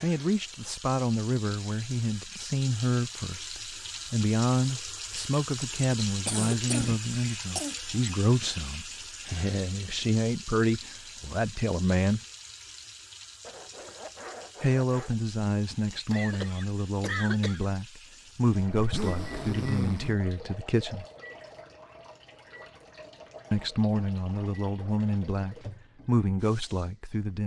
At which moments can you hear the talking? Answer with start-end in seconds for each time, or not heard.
0.0-12.2, 14.6-21.1, 23.5-27.4.